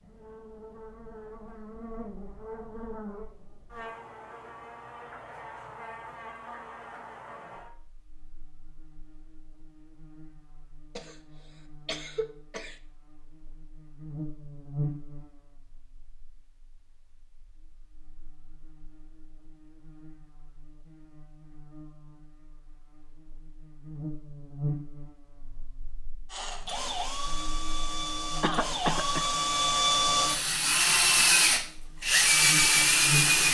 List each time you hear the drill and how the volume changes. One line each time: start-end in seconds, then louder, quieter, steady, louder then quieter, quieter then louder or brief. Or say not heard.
26.3-33.5 louder.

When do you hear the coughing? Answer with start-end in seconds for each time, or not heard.
10.9-12.8, 28.4-29.3.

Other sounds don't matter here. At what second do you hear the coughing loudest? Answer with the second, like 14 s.
29 s.